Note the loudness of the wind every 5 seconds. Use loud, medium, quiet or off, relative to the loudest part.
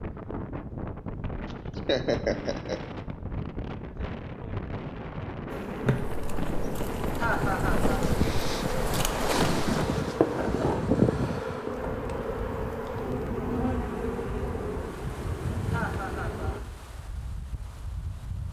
medium, loud, loud, quiet.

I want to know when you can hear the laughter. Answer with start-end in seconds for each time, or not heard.
1.5-2.8, 7.2-8.0, 15.7-16.6.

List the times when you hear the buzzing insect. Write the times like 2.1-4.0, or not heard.
5.5-16.6.